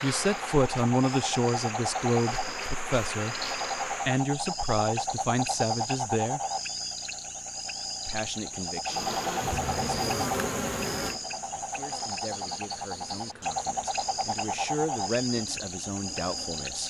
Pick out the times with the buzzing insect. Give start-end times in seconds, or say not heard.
0.0-4.2, 8.8-16.8.